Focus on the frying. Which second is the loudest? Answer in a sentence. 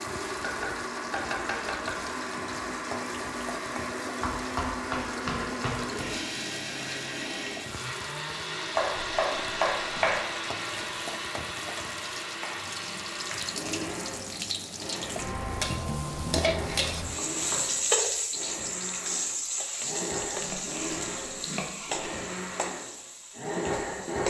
The volume of the frying peaks at 18 seconds.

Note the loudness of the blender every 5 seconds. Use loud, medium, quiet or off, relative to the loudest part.
loud, loud, loud, medium, loud.